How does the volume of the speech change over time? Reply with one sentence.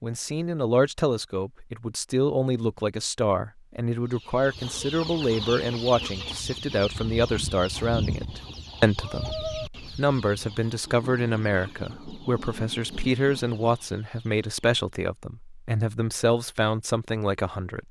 The volume of the speech stays about the same.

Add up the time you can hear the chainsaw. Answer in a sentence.
You can't hear the chainsaw here.